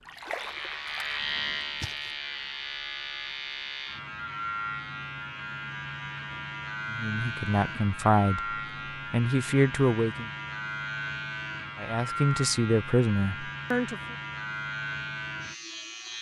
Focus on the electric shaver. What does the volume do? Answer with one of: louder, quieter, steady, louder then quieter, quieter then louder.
steady.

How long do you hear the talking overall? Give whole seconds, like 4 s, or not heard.
6 s.